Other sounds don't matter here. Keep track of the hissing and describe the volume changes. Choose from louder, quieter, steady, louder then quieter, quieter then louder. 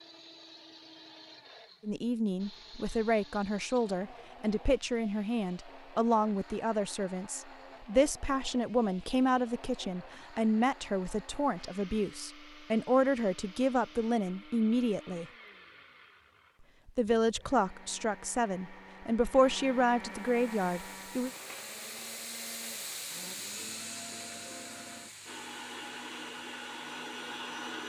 louder then quieter.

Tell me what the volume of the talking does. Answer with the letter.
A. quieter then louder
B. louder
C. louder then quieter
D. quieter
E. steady
E.